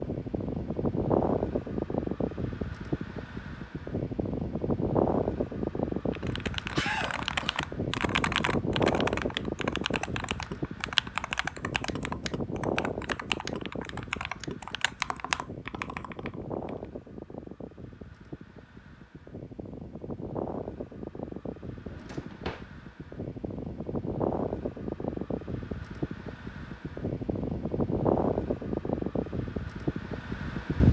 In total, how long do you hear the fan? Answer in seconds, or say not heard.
31 s.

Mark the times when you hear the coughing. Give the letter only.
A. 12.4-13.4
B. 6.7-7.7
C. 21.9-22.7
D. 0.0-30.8
B.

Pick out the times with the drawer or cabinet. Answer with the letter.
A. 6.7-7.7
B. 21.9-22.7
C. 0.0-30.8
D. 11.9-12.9
B.